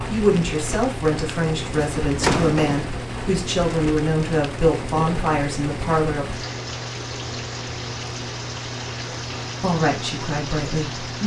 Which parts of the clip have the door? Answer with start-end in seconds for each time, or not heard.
1.8-2.9.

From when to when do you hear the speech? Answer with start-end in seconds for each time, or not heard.
0.1-6.2, 9.6-11.2.